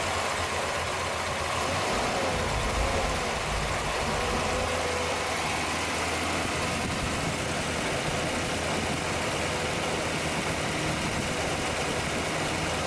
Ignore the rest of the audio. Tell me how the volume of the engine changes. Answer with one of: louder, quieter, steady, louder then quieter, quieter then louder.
steady.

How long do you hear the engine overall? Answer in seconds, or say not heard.
13 s.